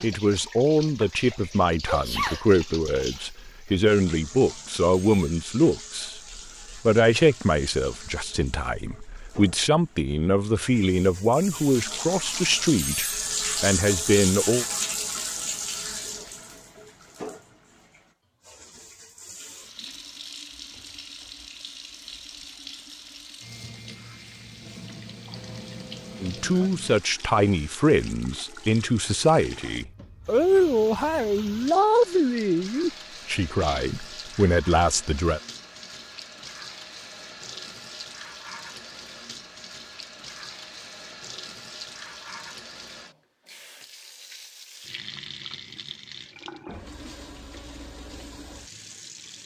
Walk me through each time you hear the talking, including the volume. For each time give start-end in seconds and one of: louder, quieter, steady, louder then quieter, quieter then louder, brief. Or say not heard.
0.0-14.7 steady
26.2-35.4 steady.